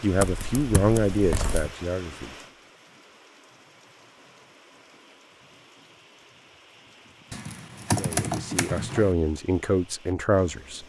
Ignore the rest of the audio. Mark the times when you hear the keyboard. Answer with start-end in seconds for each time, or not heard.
0.1-1.7, 7.3-9.1.